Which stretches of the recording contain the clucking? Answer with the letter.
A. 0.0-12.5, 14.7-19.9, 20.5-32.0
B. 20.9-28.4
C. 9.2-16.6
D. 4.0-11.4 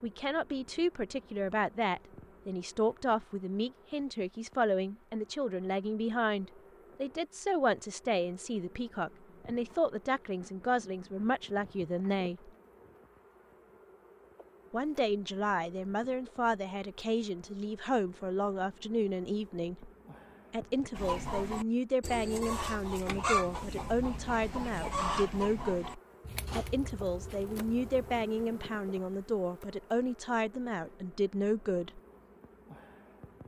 B.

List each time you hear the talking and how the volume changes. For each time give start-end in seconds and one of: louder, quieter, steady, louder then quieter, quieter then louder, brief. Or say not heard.
0.0-12.5 steady
14.7-19.9 steady
20.5-32.0 steady.